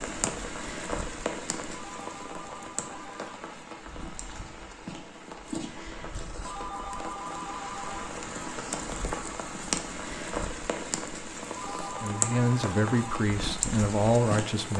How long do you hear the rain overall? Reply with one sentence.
The rain can be heard for 15 seconds in total.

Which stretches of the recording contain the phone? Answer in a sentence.
You can hear the phone from 1.7 to 3.4 s, from 6.5 to 8.1 s and from 11.6 to 13.2 s.